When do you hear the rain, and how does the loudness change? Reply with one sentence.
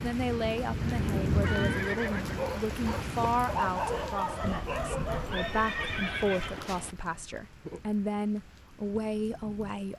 You can hear the rain from 0.0 to 9.9 s, getting quieter.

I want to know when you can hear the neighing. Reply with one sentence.
You can hear the neighing from 0.8 to 2.5 s and from 5.1 to 7.0 s.